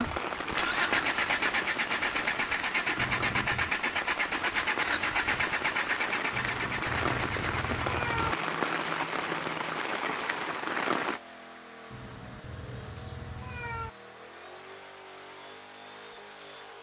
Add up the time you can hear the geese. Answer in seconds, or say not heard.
not heard.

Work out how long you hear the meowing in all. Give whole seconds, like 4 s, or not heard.
5 s.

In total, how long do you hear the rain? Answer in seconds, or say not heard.
11 s.